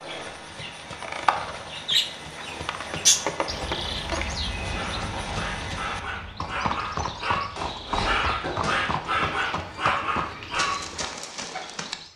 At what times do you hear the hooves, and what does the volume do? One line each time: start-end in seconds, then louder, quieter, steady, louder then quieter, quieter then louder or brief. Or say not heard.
0.0-12.1 steady.